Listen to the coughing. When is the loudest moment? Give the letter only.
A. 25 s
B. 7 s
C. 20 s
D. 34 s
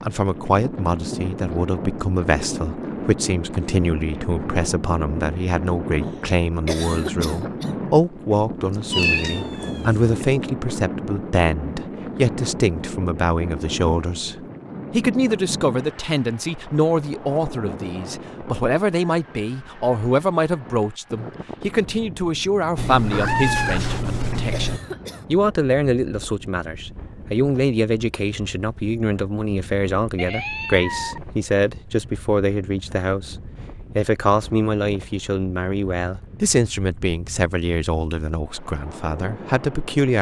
B.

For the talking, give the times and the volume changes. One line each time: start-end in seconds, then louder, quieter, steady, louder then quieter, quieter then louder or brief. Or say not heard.
0.0-40.1 steady.